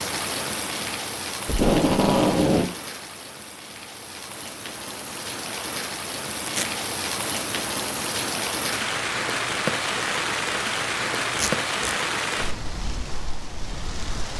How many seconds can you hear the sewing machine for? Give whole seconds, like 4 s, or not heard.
not heard.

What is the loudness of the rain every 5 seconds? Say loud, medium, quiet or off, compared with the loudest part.
medium, loud, loud.